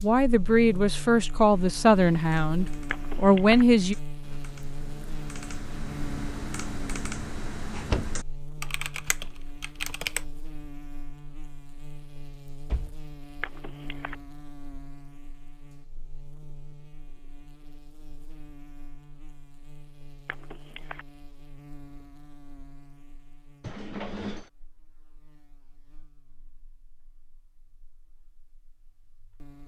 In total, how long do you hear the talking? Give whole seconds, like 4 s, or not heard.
4 s.